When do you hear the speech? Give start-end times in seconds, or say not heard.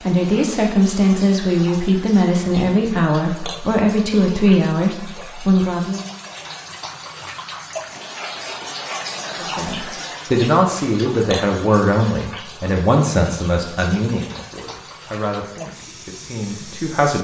0.1-6.0, 9.4-17.1.